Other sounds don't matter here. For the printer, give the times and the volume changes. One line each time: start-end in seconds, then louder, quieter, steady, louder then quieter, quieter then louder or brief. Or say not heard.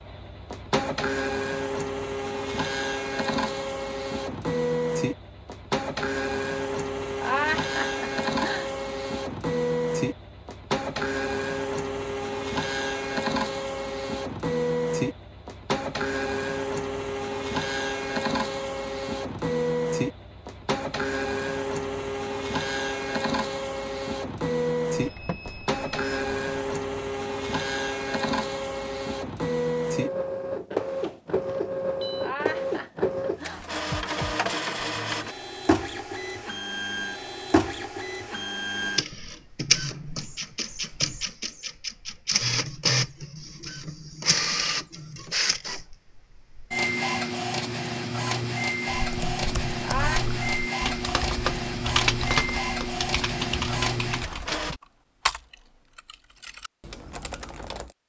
0.0-54.8 steady.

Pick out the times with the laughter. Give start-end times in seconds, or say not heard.
7.2-8.7, 32.2-33.6, 49.8-50.2.